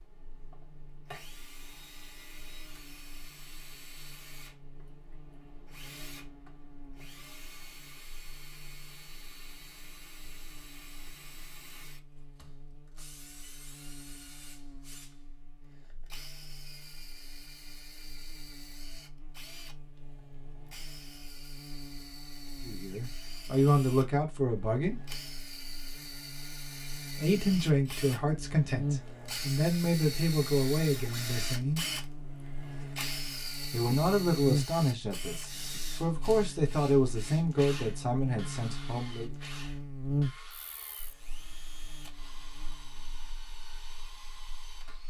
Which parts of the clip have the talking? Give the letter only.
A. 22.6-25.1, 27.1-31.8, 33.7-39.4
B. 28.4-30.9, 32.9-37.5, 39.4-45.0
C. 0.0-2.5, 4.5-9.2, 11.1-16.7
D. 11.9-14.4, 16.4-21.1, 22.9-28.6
A.